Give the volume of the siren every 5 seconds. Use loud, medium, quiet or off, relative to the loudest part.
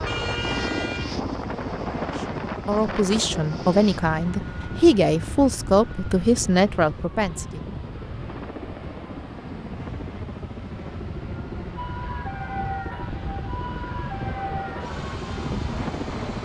off, off, loud, medium.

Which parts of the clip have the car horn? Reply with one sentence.
You can hear the car horn from 0.1 to 1.2 s.